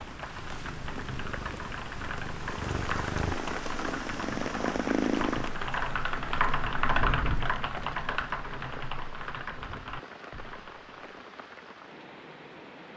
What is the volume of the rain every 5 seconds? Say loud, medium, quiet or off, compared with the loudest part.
loud, loud, medium.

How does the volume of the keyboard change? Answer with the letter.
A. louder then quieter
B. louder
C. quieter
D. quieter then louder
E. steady
A.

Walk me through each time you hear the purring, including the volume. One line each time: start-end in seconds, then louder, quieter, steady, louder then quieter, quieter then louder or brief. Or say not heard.
0.0-5.5 louder.